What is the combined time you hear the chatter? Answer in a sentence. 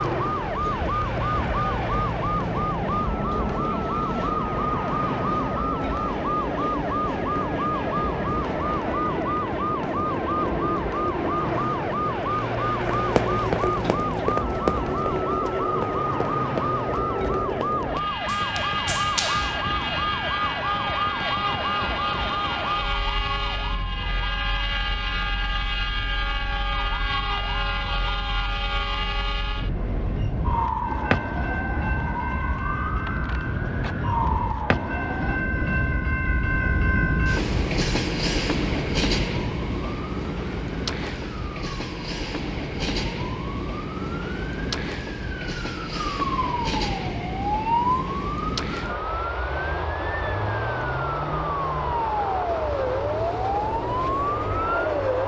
You can't hear the chatter here.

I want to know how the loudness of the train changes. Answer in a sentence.
The volume of the train stays about the same.